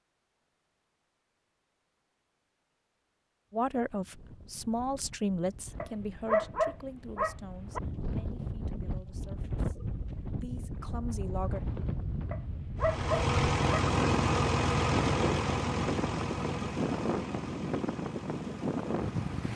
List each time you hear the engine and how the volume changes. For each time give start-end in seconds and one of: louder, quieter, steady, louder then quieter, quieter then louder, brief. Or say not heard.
12.8-19.5 quieter.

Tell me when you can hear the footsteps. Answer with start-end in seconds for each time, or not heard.
not heard.